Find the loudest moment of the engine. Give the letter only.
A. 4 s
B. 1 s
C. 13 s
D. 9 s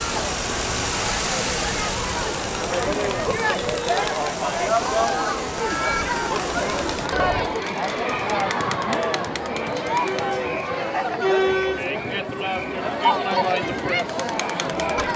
B.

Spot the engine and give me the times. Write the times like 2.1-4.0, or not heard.
0.0-7.1.